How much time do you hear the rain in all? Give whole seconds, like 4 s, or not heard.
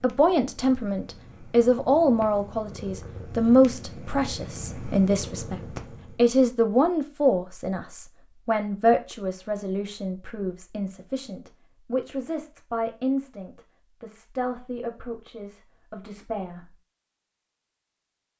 not heard.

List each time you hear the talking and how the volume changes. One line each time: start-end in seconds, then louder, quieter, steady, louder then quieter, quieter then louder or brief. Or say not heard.
0.0-16.8 quieter.